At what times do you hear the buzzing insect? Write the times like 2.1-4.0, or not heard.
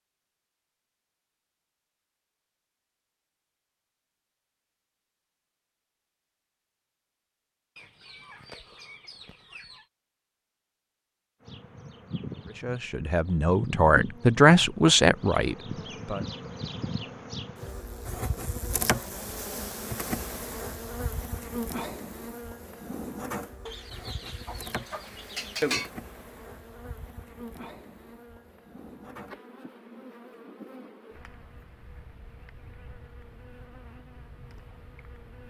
11.4-35.4.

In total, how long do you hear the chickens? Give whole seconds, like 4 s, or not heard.
4 s.